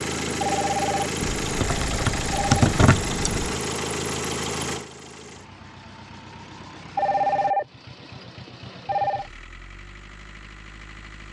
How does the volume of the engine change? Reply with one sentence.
The loudness of the engine goes down.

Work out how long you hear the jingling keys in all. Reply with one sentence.
You can hear the jingling keys for 2 seconds altogether.